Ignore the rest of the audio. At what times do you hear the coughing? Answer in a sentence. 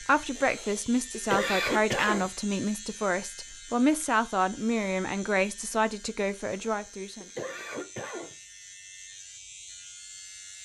You can hear the coughing from 0.3 to 2.3 s and from 6.4 to 8.3 s.